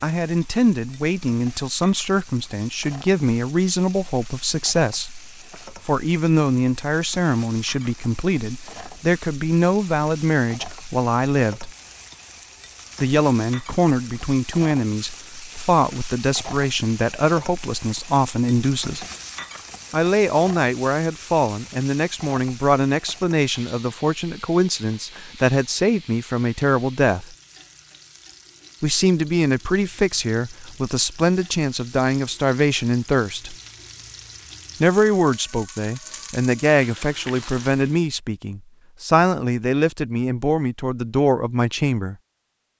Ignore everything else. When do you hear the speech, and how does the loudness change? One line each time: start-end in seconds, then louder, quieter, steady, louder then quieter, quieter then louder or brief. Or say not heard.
0.0-11.7 steady
13.0-19.1 steady
19.9-27.4 steady
28.8-33.5 steady
34.8-42.1 steady.